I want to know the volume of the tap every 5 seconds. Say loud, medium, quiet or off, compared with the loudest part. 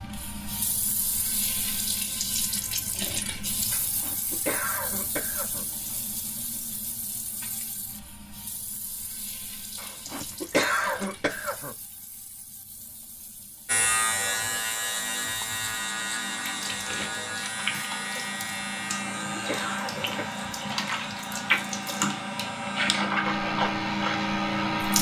medium, quiet, quiet, medium, loud.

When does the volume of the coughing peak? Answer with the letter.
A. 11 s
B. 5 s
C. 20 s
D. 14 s
A.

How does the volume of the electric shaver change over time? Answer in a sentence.
The loudness of the electric shaver goes down.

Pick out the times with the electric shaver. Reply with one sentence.
You can hear the electric shaver from 13.7 to 24.9 s.